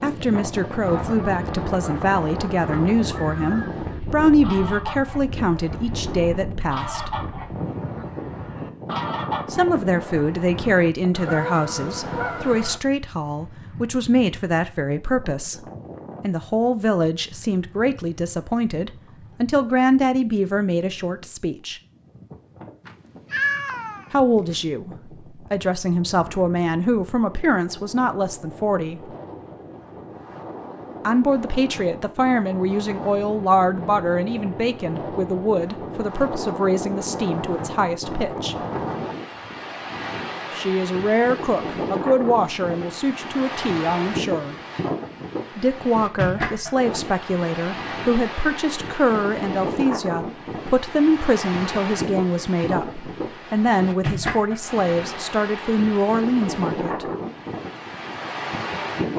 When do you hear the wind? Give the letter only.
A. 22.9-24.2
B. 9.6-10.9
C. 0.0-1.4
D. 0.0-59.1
D.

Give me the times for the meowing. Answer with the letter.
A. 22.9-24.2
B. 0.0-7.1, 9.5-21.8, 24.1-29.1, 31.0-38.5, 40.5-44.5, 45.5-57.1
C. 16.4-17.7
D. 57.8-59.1
A.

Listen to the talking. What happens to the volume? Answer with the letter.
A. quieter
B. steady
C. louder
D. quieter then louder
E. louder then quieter
B.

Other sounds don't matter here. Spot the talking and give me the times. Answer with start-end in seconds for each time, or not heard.
0.0-7.1, 9.5-21.8, 24.1-29.1, 31.0-38.5, 40.5-44.5, 45.5-57.1.